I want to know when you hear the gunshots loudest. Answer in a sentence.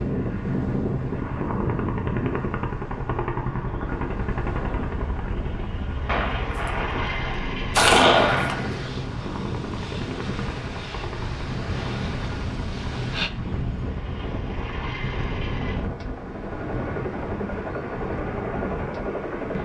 The volume of the gunshots peaks at 8 seconds.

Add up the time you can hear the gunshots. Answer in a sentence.
You can hear the gunshots for 3 seconds altogether.